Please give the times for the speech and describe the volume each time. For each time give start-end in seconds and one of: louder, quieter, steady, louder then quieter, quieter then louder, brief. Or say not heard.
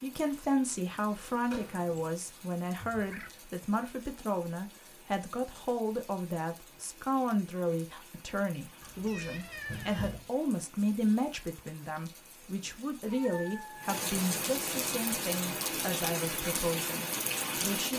0.0-17.9 steady.